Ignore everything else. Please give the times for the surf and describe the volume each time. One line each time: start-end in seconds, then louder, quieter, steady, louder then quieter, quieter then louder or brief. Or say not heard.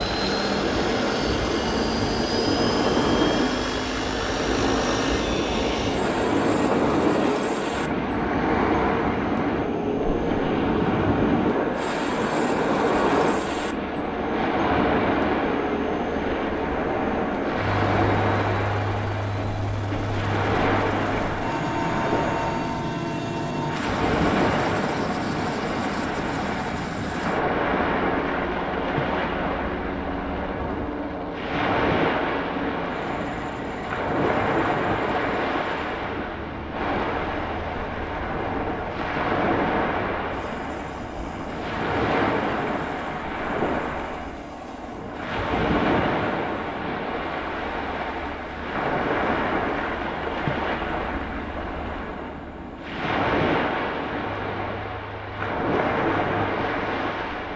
0.0-57.5 steady.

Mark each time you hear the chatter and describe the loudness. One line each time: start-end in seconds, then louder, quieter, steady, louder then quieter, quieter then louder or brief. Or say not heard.
not heard.